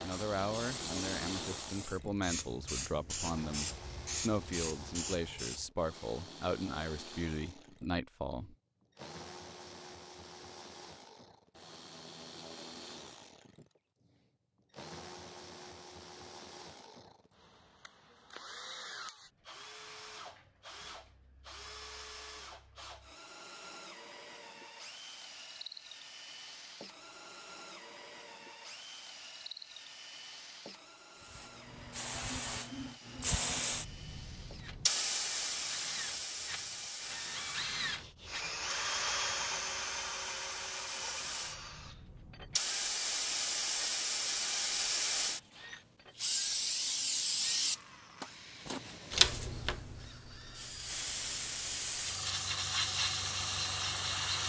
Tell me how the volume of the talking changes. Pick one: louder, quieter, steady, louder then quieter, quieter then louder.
steady.